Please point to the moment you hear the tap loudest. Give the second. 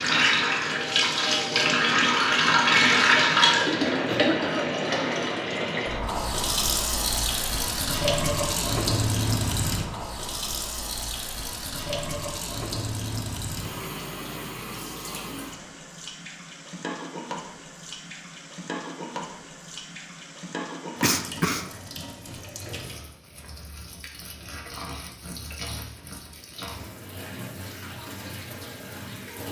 3 s.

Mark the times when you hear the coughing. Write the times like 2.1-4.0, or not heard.
4.0-4.7, 21.0-21.6.